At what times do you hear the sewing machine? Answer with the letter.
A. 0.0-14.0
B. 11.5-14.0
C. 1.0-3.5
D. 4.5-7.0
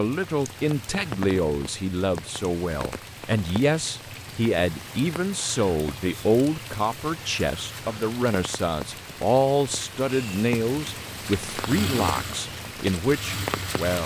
B.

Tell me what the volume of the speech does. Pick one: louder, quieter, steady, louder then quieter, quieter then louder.
steady.